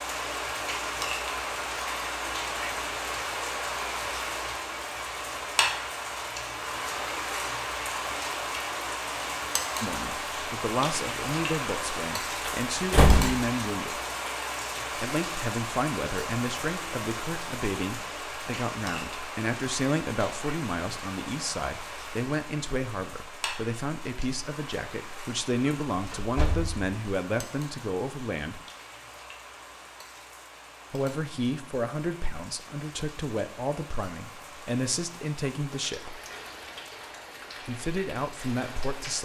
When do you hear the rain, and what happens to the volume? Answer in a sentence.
The rain can be heard from 0.0 to 39.2 s, getting quieter.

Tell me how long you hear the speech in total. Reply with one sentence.
The speech can be heard for 25 seconds in total.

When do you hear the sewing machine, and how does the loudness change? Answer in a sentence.
The sewing machine can't be heard in this clip.